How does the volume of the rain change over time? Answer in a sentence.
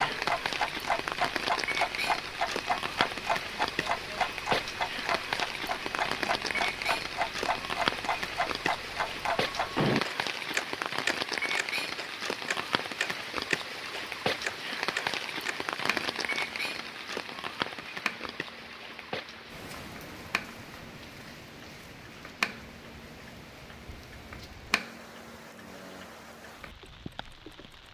The volume of the rain goes down.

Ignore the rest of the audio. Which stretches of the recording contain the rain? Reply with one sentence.
The rain can be heard from 0.0 to 27.8 s.